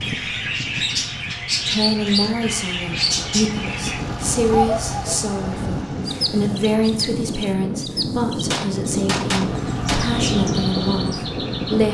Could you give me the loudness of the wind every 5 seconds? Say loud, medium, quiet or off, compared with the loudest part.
medium, loud, loud.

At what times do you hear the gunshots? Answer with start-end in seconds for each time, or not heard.
8.4-10.1.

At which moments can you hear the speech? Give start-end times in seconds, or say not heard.
1.6-11.8.